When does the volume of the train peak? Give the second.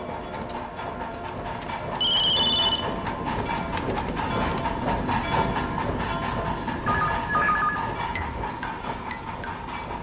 5 s.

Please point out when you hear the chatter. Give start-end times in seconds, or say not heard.
not heard.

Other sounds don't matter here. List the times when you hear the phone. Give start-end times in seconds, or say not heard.
2.0-2.9, 6.8-8.4.